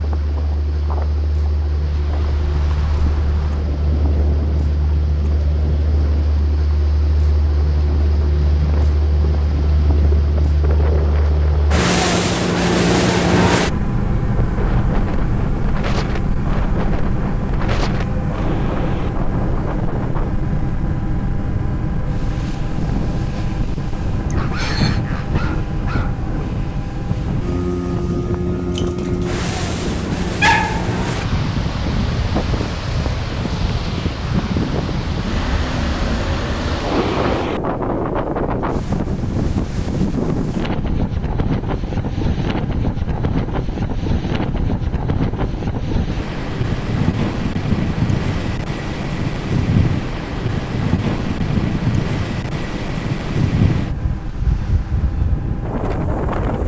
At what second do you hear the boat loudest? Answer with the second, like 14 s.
13 s.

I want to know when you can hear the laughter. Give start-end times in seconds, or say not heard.
24.3-25.0.